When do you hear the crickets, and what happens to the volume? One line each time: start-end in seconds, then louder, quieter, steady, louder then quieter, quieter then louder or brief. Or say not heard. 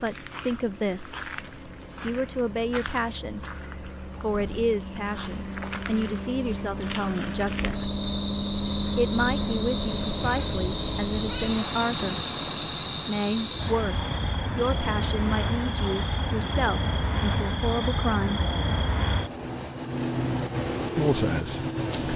0.0-22.1 louder.